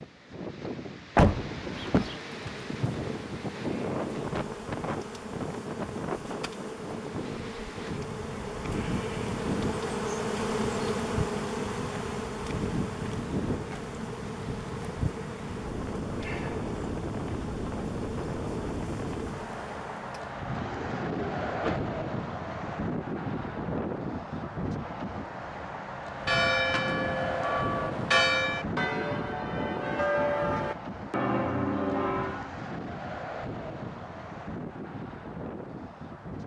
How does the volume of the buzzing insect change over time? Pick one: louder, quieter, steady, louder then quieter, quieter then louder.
louder then quieter.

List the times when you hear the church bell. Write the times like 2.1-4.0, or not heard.
26.1-32.5.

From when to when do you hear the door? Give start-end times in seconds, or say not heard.
1.1-2.2, 20.6-21.9.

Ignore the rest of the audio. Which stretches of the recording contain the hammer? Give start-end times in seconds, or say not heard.
not heard.